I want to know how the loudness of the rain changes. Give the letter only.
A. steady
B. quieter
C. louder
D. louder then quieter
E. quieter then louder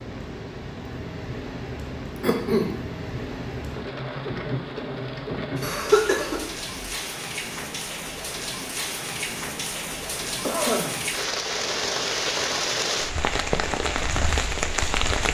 C.